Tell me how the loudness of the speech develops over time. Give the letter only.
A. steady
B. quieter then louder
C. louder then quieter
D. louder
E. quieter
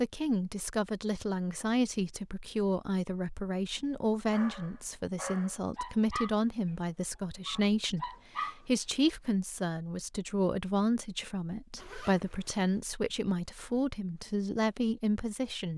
A.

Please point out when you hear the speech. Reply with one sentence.
You can hear the speech from 0.0 to 15.7 s.